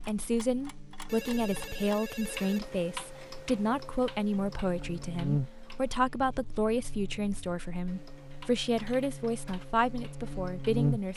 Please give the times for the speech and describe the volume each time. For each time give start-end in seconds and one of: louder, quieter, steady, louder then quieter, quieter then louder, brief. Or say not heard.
0.0-11.1 steady.